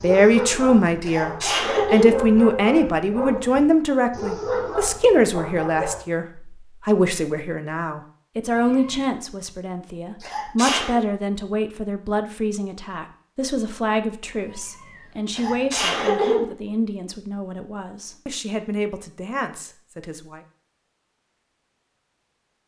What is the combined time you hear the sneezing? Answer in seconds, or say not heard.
3 s.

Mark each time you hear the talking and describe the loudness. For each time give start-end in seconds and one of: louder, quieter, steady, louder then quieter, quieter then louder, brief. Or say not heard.
0.0-20.4 quieter.